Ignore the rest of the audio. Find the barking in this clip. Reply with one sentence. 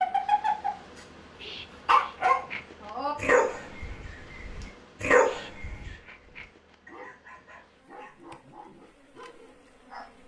The barking can be heard from 0.0 to 0.7 s and from 1.4 to 10.1 s.